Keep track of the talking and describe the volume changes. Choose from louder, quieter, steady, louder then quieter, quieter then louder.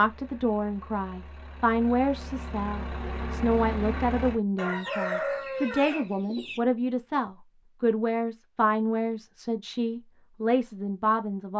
steady.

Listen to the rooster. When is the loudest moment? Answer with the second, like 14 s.
5 s.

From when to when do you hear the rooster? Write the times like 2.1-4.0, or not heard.
4.5-6.6.